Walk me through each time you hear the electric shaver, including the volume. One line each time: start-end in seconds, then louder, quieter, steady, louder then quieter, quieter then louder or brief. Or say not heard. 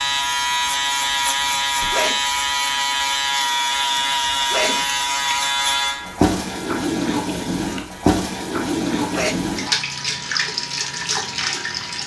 0.0-12.0 quieter.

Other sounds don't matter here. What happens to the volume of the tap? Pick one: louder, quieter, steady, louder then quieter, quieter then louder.
louder.